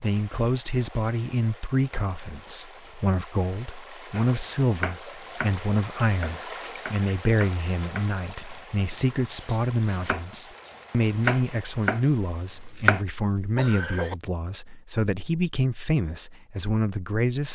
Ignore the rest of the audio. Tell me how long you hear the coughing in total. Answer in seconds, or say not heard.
2 s.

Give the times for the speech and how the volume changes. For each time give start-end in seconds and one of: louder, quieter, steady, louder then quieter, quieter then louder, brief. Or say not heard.
0.0-17.4 steady.